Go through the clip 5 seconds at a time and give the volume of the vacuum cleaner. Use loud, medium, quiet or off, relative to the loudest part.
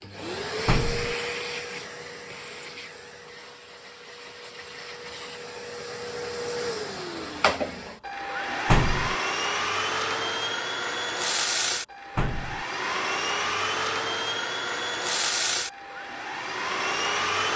medium, loud, loud, loud.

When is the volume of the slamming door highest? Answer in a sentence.
The loudest moment of the slamming door is at 9 seconds.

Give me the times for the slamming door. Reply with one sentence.
The slamming door can be heard from 0.7 to 1.1 s, from 8.7 to 9.2 s and from 12.2 to 12.7 s.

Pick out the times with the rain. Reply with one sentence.
The rain can't be heard in this clip.